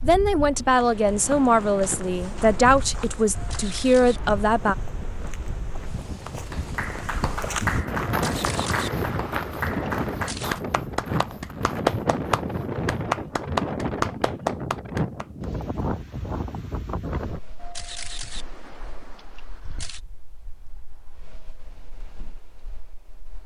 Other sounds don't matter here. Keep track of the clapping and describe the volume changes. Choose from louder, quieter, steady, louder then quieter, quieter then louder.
louder.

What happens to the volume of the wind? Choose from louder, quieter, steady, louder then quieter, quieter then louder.
louder then quieter.